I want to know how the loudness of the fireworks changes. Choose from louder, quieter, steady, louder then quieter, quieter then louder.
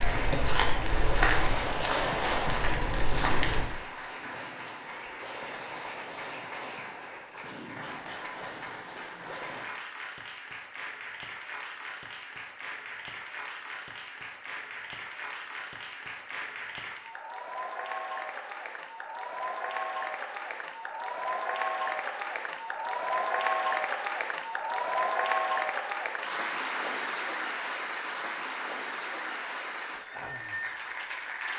quieter.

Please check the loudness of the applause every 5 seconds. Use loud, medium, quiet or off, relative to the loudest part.
medium, medium, medium, medium, loud, loud, medium.